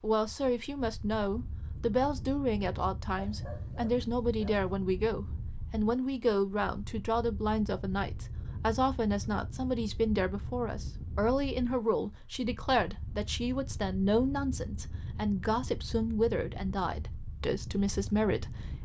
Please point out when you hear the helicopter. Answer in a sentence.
You can't hear the helicopter here.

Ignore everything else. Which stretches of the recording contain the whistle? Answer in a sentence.
You can't hear the whistle here.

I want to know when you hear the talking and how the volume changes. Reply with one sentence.
You can hear the talking from 0.0 to 18.7 s, at a steady volume.